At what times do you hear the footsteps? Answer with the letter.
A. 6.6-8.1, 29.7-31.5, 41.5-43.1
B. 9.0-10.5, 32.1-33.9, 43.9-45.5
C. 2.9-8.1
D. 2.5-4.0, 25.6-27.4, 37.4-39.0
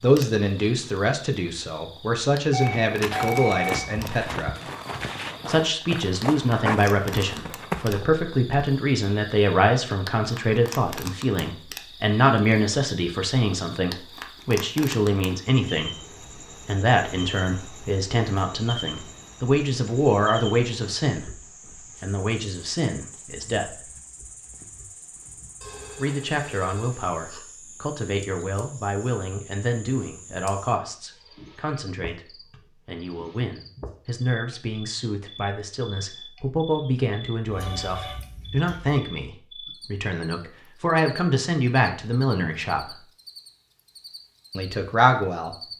C.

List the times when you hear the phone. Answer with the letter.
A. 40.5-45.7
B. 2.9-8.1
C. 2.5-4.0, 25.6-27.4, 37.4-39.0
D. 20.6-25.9
C.